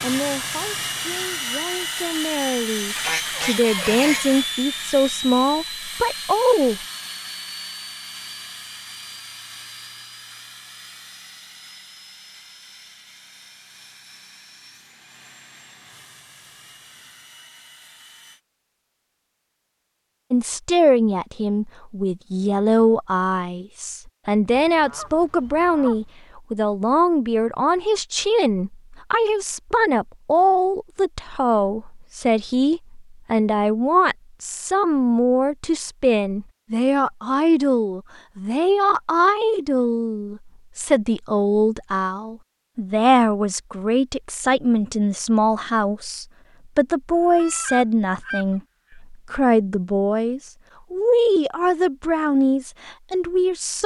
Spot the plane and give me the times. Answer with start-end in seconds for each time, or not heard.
0.0-18.4.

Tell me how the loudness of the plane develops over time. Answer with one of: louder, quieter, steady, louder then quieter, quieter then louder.
quieter.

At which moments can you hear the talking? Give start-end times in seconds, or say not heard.
0.0-6.8, 20.3-53.8.